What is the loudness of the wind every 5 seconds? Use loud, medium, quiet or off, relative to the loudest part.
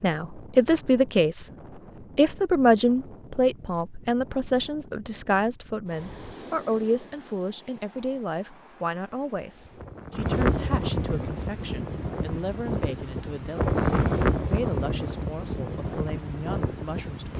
quiet, quiet, loud, medium.